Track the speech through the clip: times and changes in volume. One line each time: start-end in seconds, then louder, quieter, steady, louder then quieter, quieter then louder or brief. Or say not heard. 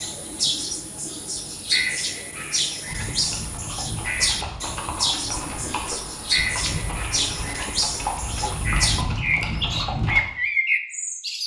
not heard.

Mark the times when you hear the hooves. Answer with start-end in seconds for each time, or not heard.
2.9-10.2.